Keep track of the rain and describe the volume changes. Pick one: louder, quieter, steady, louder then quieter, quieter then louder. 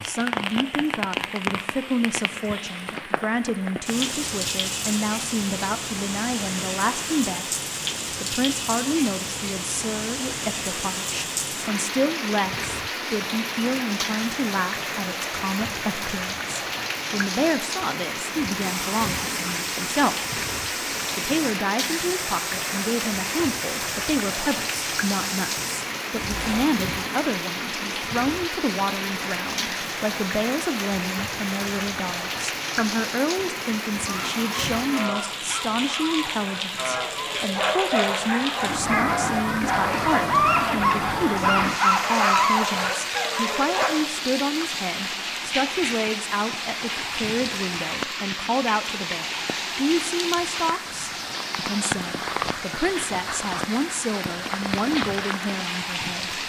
steady.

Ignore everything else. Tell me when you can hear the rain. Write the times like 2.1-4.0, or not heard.
0.0-56.4.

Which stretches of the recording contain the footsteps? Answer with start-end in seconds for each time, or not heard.
18.6-26.6.